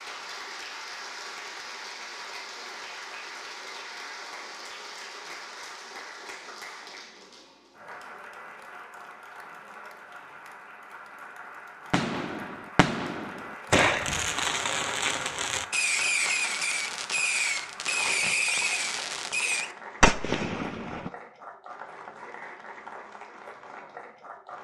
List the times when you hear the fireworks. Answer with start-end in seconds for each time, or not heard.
11.9-21.1.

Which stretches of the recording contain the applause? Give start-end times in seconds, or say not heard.
0.0-24.5.